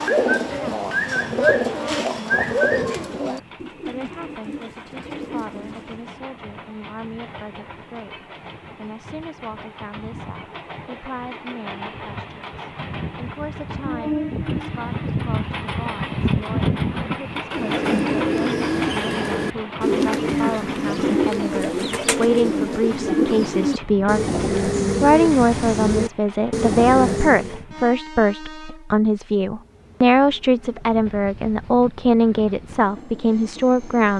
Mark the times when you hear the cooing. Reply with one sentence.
You can hear the cooing from 0.0 to 6.2 s and from 17.5 to 27.6 s.